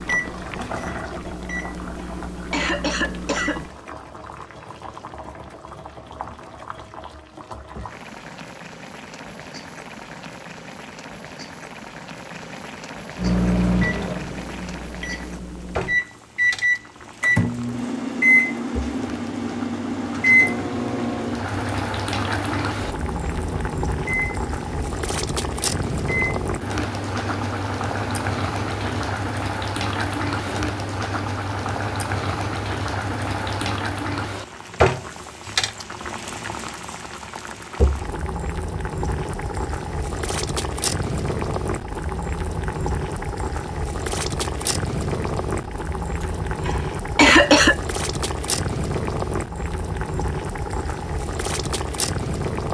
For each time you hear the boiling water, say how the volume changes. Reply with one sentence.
The boiling water can be heard from 0.0 to 52.6 s, getting louder.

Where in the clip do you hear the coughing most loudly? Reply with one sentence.
The loudest moment of the coughing is at 47 seconds.